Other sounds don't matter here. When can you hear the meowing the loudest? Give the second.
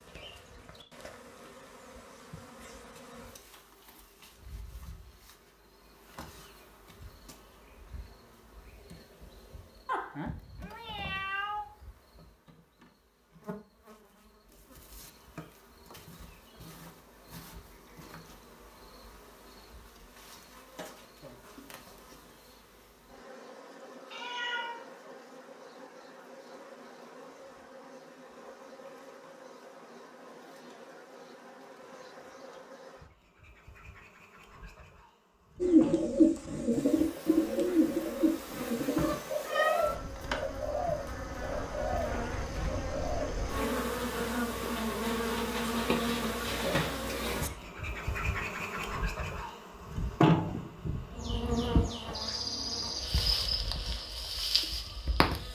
40 s.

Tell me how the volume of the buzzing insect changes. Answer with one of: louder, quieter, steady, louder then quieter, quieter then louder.
louder.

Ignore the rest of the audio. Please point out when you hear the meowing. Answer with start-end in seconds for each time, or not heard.
9.8-11.7, 24.1-24.9, 38.8-40.0.